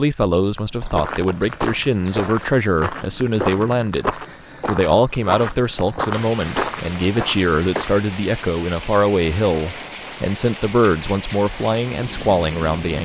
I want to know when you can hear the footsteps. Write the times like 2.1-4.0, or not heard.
0.6-8.0.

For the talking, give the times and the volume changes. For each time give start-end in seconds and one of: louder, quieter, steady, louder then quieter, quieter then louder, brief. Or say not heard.
0.0-12.9 steady.